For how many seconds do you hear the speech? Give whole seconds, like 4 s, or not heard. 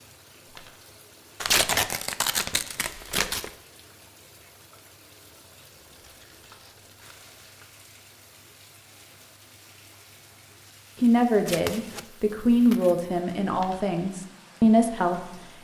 4 s.